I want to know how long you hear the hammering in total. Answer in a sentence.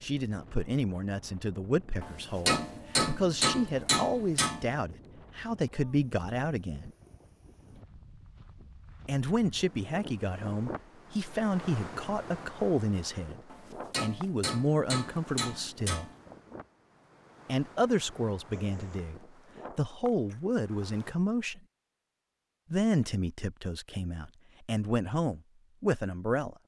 You can hear the hammering for 5 seconds altogether.